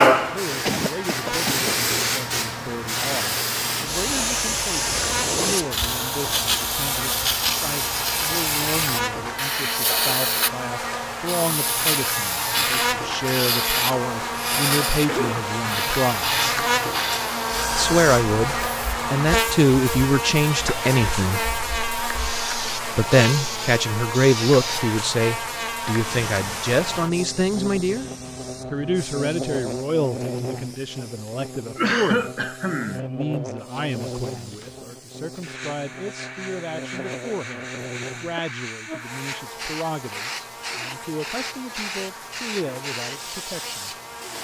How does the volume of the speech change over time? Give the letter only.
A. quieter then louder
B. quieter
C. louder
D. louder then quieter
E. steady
D.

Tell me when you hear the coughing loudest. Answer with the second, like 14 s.
32 s.